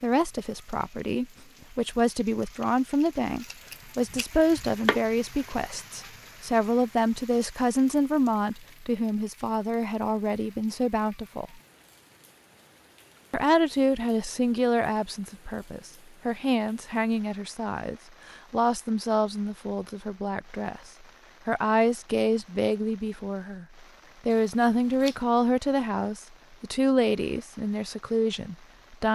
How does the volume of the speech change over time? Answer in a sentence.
The volume of the speech stays about the same.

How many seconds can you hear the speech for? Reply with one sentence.
You can hear the speech for 27 seconds altogether.